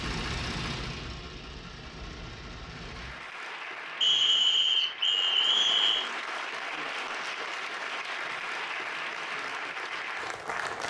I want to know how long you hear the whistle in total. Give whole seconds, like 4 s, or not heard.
2 s.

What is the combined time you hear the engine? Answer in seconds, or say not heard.
3 s.